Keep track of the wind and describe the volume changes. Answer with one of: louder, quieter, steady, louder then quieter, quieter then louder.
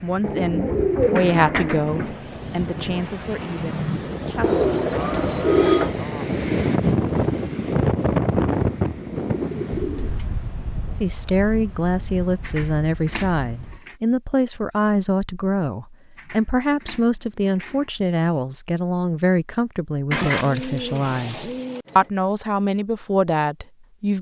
louder then quieter.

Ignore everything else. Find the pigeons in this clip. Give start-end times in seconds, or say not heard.
0.2-2.2, 4.4-6.0, 8.4-10.3, 12.4-13.9, 16.1-17.9, 20.1-22.1.